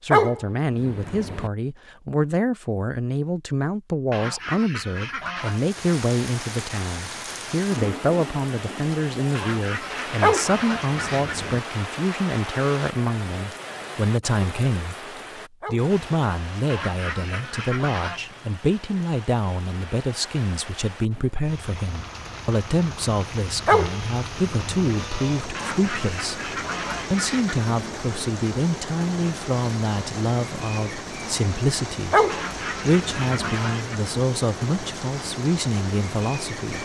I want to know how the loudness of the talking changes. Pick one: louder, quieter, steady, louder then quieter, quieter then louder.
steady.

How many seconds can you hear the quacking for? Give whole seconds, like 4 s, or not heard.
9 s.